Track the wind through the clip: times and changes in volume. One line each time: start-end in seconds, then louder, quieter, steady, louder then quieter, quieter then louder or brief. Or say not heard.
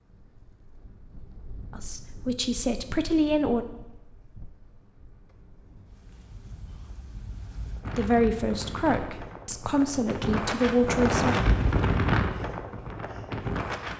0.0-13.9 louder.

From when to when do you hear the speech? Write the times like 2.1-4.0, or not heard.
1.7-3.6, 8.0-11.3.